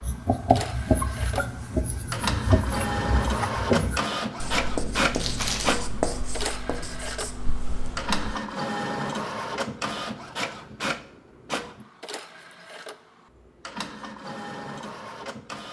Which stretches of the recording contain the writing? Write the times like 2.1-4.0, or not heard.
0.0-8.4.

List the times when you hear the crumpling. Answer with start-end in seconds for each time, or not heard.
5.1-5.8.